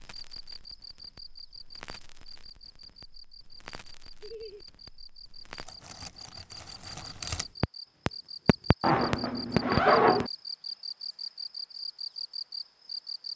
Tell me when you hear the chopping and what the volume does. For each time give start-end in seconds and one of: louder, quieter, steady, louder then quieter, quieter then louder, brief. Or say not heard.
not heard.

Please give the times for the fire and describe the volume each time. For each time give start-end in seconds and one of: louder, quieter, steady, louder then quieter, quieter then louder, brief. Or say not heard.
0.0-10.2 louder.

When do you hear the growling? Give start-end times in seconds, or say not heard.
not heard.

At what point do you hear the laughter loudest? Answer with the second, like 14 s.
10 s.